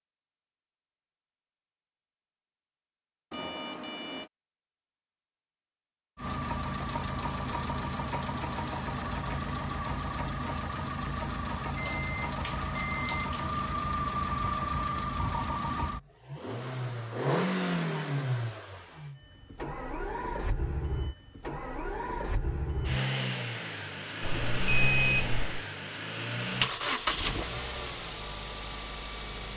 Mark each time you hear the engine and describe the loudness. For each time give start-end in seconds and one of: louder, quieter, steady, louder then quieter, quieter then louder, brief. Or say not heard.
6.2-29.5 steady.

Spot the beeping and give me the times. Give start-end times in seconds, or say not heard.
3.3-4.3, 11.8-13.3, 24.2-25.6.